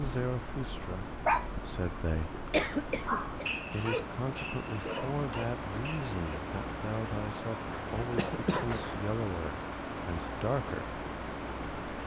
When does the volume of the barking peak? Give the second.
1 s.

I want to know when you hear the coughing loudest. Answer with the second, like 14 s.
3 s.